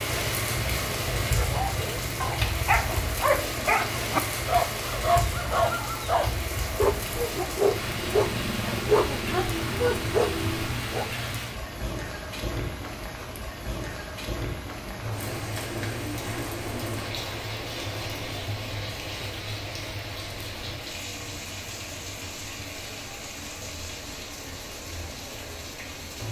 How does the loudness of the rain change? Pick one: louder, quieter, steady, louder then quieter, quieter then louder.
quieter.